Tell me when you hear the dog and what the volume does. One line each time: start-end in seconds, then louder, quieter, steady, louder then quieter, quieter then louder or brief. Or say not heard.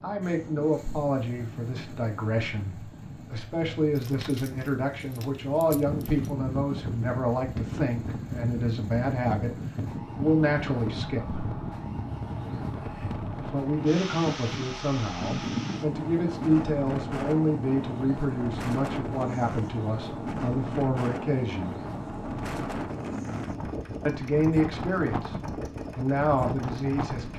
not heard.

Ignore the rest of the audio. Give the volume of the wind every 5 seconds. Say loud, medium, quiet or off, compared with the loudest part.
quiet, loud, loud, loud, loud, loud.